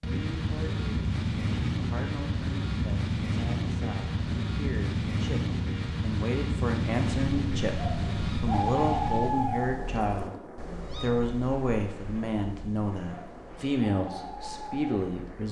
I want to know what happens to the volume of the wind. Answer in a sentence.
The loudness of the wind goes down.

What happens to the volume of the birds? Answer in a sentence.
The volume of the birds goes down, then up.